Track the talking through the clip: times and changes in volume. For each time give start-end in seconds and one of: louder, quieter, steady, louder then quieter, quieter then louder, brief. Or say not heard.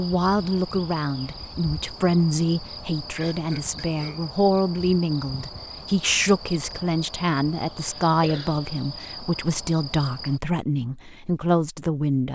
0.0-12.2 steady.